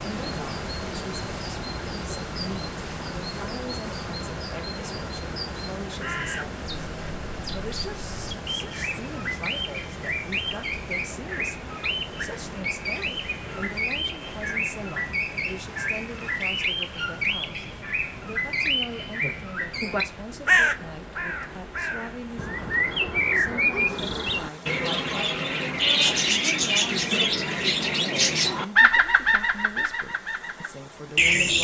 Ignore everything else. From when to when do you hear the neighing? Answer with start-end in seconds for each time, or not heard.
not heard.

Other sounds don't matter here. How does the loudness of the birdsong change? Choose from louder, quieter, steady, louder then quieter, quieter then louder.
louder.